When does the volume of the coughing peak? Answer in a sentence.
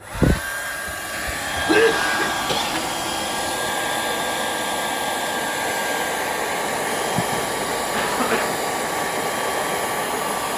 The volume of the coughing peaks at 2 seconds.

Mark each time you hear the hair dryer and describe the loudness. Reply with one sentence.
The hair dryer can be heard from 0.0 to 10.5 s, at a steady volume.